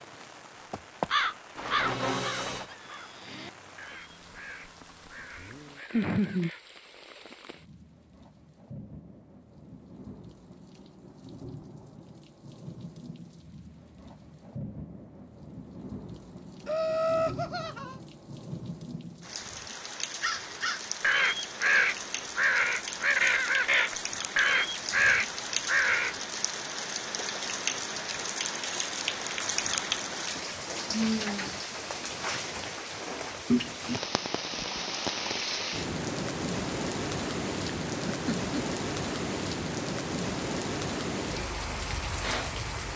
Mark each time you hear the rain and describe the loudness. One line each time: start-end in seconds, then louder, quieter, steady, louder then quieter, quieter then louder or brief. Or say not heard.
0.0-42.9 louder.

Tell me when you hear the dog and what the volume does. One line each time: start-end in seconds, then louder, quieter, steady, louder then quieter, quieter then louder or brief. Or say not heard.
not heard.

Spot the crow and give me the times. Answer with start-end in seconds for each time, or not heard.
0.7-6.7, 20.2-26.1.